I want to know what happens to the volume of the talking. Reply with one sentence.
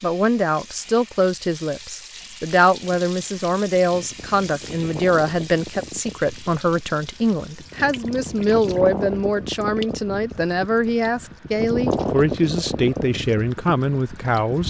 The volume of the talking stays about the same.